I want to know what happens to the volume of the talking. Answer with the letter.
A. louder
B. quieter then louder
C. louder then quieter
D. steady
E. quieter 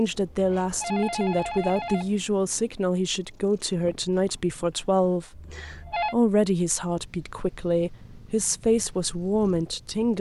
D.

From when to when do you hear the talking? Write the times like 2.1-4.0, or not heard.
0.0-10.1.